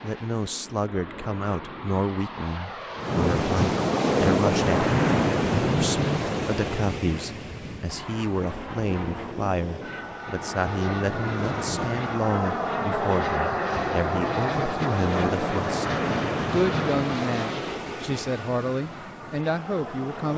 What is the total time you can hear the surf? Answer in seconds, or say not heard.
17 s.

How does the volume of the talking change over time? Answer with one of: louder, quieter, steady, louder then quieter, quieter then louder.
steady.